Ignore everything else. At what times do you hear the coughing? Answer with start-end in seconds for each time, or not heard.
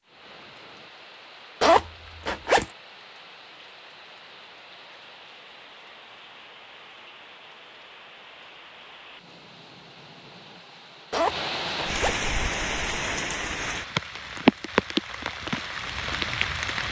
not heard.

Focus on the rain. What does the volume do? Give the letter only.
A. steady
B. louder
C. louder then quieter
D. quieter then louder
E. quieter
B.